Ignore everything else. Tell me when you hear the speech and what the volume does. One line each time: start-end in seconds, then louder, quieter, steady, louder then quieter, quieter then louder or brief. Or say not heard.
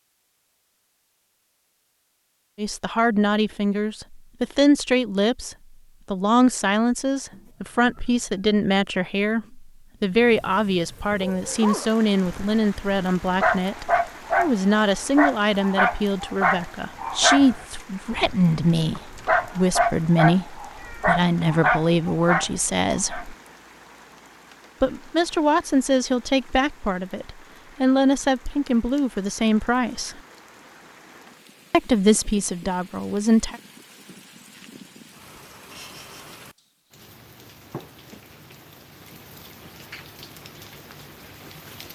2.5-23.4 steady
24.8-30.2 steady
31.7-33.6 brief.